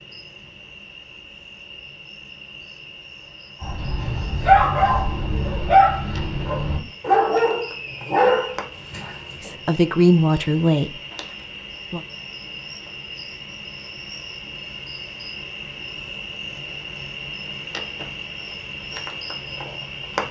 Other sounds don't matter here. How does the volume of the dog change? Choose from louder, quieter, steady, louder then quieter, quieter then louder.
quieter then louder.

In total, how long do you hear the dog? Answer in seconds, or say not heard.
6 s.